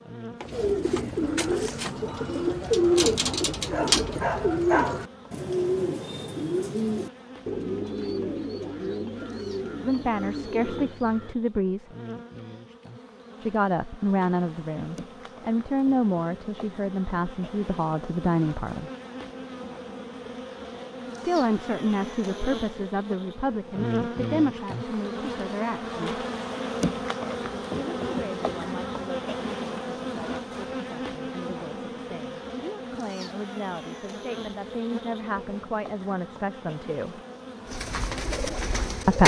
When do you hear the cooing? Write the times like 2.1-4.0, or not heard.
0.4-11.3, 37.6-39.2.